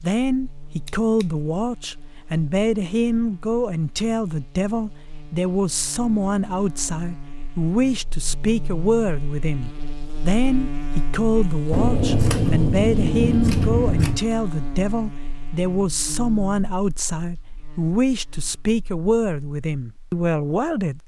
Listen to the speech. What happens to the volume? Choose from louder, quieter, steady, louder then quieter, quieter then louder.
steady.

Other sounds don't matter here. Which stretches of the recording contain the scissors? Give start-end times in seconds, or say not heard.
0.8-1.2, 11.7-14.2.